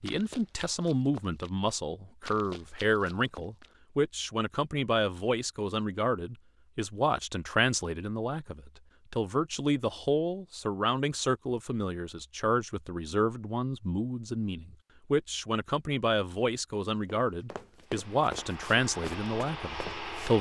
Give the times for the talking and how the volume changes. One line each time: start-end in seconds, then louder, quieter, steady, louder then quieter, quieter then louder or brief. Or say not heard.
0.0-20.3 steady.